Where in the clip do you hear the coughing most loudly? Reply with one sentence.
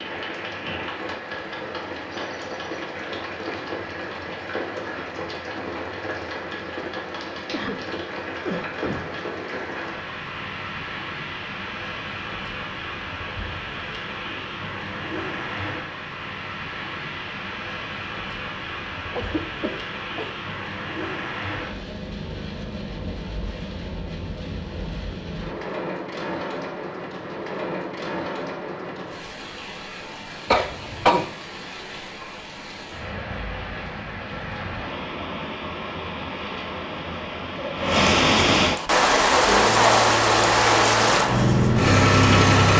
The volume of the coughing peaks at 31 seconds.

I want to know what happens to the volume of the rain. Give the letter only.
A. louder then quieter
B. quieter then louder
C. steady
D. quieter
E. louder
E.